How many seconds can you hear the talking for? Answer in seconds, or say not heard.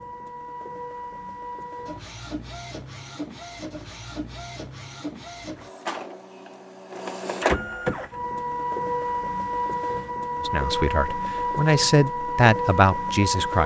3 s.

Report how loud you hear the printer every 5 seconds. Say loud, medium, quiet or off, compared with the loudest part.
medium, loud, loud.